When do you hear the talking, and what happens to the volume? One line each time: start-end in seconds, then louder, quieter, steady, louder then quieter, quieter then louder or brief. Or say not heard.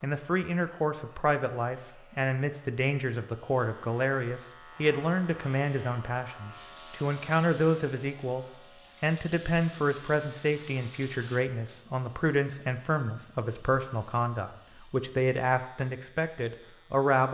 0.0-17.2 steady.